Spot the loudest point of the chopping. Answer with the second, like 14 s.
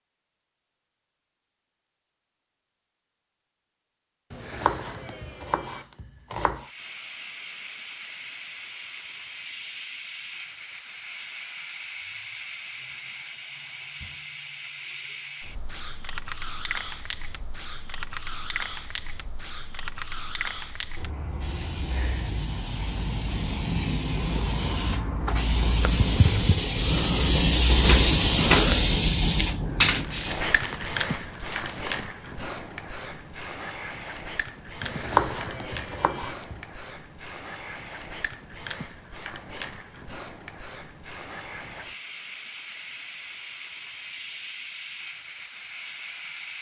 35 s.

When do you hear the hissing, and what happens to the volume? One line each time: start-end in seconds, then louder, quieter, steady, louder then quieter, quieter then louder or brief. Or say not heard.
6.6-46.5 louder then quieter.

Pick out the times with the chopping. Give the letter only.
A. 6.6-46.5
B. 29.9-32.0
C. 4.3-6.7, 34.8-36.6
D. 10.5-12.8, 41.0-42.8
C.